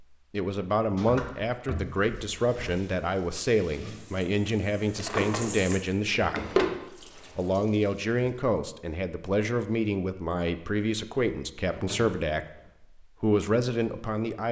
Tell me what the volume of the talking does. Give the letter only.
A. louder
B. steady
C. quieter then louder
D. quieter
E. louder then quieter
B.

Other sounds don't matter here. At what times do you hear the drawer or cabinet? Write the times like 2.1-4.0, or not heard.
0.9-2.8, 5.0-6.8, 11.7-12.7.